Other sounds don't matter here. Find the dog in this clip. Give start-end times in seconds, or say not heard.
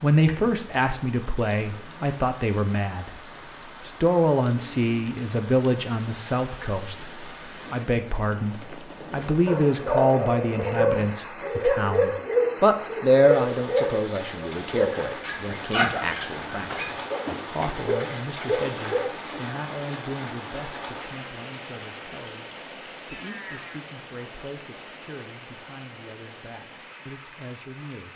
9.2-19.1.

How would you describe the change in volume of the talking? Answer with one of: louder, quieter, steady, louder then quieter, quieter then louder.
quieter.